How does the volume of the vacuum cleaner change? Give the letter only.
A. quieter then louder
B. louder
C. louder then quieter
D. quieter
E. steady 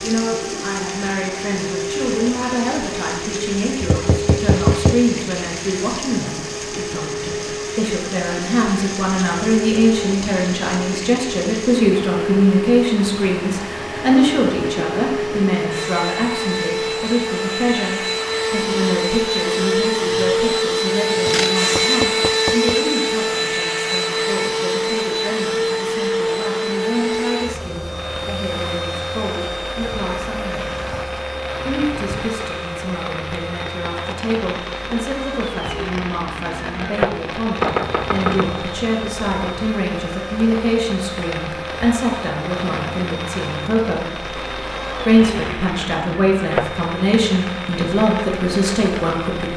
C.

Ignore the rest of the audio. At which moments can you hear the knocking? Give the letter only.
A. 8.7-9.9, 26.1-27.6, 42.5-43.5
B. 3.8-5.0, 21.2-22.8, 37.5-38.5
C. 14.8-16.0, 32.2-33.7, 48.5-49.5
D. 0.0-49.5
B.